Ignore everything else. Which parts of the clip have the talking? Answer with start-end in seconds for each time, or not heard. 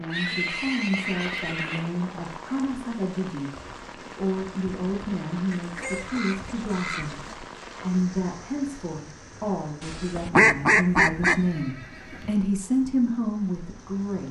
0.0-14.2.